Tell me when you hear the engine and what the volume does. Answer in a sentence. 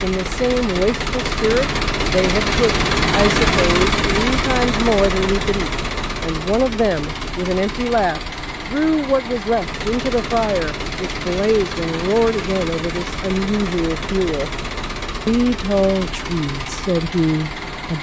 The engine can be heard from 0.0 to 17.9 s, getting quieter.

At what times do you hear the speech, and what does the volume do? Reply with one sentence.
The speech can be heard from 0.0 to 14.5 s, at a steady volume; and briefly from 15.2 to 17.9 s.